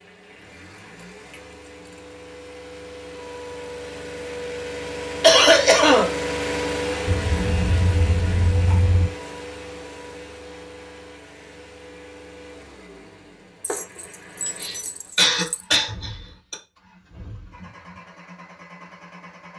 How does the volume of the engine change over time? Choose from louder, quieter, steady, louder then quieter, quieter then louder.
louder then quieter.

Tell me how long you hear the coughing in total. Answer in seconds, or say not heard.
3 s.